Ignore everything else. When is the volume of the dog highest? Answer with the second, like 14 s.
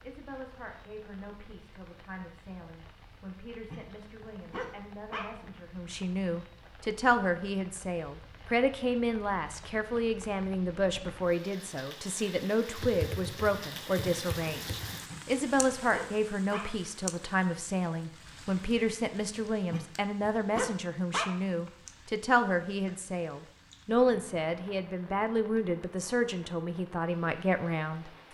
21 s.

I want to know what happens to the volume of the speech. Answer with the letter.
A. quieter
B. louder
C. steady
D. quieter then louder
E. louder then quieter
B.